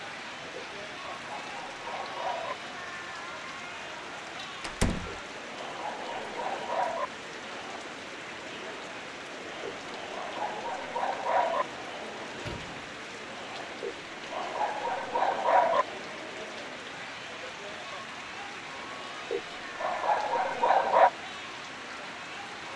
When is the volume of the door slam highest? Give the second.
5 s.